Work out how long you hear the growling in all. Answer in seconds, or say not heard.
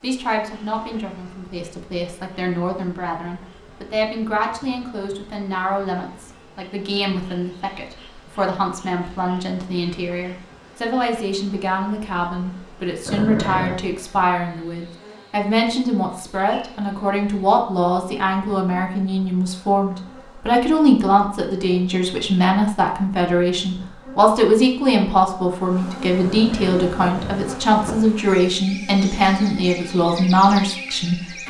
2 s.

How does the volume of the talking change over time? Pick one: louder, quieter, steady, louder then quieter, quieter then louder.
louder.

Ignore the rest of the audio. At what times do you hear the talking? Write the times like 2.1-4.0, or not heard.
0.0-31.4.